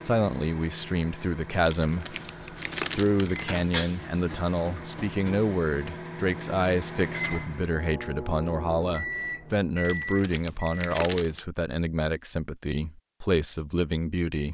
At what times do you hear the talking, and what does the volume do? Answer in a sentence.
You can hear the talking briefly from 0.0 to 2.1 s; and from 3.0 to 14.5 s, at a steady volume.